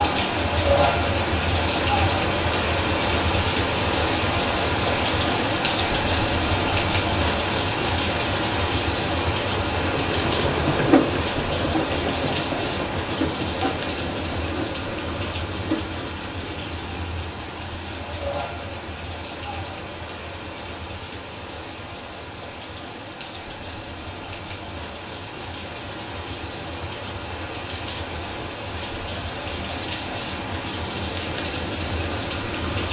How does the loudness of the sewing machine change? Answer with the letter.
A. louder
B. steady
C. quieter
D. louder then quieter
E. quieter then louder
C.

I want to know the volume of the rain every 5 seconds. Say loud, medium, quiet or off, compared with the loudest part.
loud, loud, medium, medium, quiet, medium, medium.